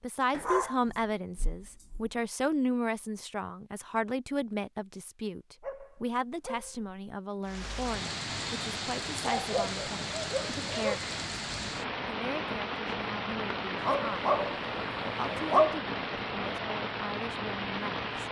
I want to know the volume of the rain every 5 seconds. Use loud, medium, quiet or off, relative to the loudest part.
off, loud, loud, loud.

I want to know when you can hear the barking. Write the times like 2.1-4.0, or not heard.
0.3-2.1, 5.6-7.0, 9.2-11.1, 13.8-15.8.